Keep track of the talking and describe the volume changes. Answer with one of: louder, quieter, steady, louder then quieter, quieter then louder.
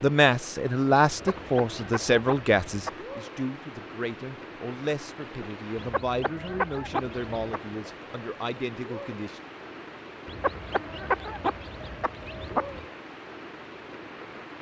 quieter.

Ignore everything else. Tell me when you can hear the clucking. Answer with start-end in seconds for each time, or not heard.
1.1-3.0, 5.8-7.6, 10.2-12.9.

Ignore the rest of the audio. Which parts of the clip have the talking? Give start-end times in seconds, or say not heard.
0.0-9.4.